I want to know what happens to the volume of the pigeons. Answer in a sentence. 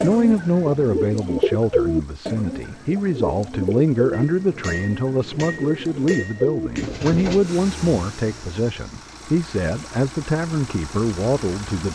The volume of the pigeons goes down, then up.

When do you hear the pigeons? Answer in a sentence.
You can hear the pigeons from 0.0 to 7.7 s.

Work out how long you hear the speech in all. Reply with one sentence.
The speech can be heard for 12 seconds in total.